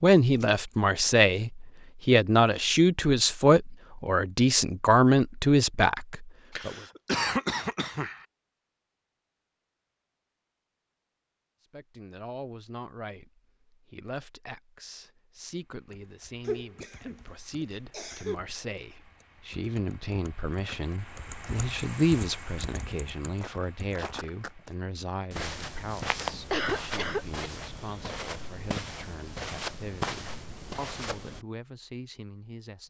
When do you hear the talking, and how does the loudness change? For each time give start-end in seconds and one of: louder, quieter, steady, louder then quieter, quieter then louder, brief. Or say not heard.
0.0-6.8 steady
11.6-32.8 louder then quieter.